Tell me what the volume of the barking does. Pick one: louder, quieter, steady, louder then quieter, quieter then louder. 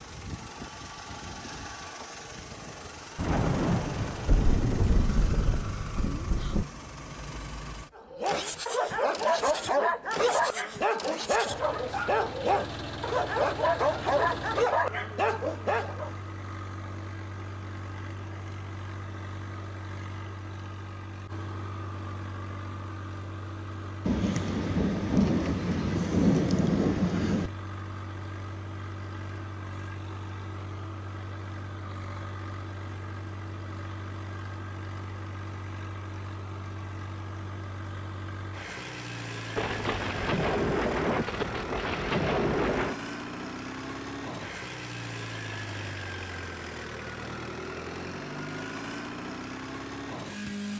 steady.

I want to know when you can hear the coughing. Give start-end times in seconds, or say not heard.
not heard.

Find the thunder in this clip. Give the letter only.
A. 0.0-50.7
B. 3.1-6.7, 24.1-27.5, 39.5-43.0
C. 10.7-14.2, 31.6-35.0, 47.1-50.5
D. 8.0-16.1
B.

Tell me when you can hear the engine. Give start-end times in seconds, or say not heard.
0.0-50.7.